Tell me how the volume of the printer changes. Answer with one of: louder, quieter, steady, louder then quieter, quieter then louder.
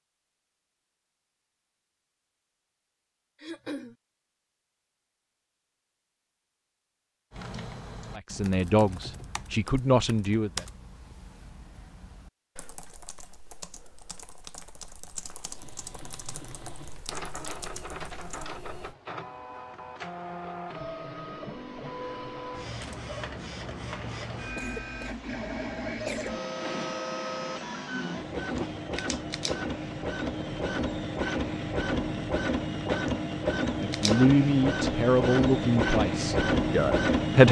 louder.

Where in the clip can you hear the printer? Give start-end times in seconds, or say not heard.
15.6-37.4.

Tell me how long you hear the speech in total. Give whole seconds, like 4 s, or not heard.
6 s.